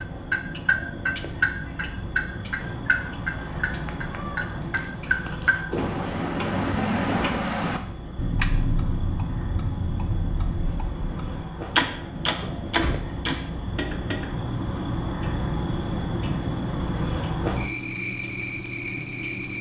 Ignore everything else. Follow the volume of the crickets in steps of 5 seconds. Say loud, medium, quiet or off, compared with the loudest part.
medium, medium, medium, loud.